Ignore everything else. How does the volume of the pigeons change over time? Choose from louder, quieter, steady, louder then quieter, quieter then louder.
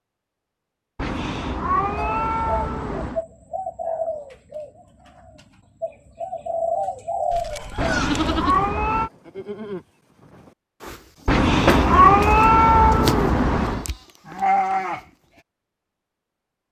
quieter then louder.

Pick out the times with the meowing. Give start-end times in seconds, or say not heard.
0.9-3.2, 7.8-9.1, 11.2-13.8.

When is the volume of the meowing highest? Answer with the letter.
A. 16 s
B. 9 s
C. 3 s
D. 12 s
D.